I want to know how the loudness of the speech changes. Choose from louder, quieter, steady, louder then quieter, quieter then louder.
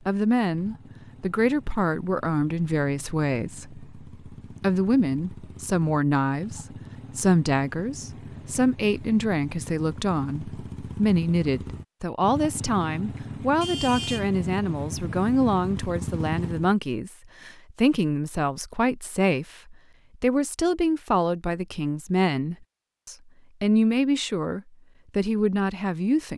steady.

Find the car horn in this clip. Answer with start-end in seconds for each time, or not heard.
13.6-14.3.